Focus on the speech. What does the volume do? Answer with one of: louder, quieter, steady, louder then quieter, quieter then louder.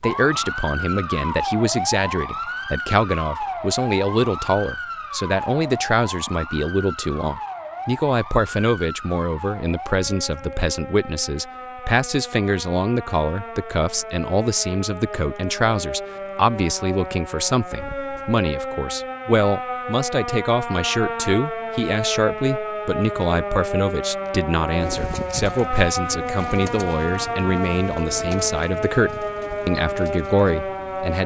steady.